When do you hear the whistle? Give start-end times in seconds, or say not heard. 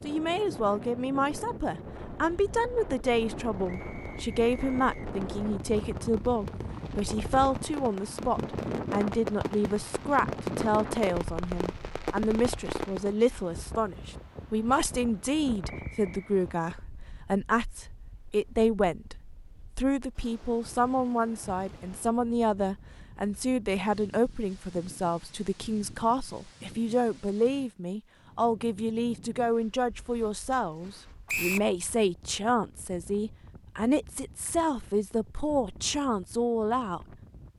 3.6-5.0, 15.7-16.3, 31.2-31.7.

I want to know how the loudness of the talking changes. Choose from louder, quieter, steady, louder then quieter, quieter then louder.
steady.